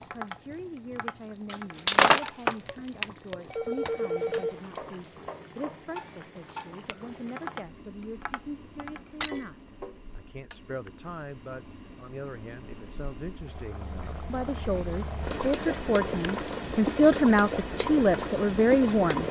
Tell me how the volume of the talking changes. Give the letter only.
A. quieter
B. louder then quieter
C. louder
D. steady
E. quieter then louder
C.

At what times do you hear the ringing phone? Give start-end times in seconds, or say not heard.
3.5-5.0.